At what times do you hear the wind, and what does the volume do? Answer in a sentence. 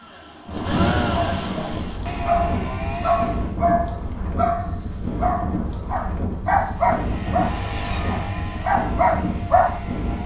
You can hear the wind from 0.1 to 10.2 s, at a steady volume.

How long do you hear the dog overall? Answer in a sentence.
The dog can be heard for 9 seconds in total.